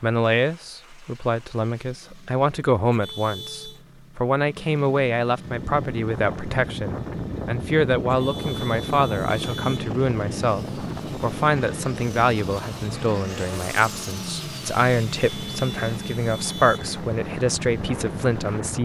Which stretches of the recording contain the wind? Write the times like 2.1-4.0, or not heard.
5.3-18.8.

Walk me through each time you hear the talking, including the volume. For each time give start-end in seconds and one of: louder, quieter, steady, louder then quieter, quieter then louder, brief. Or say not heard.
0.0-18.8 steady.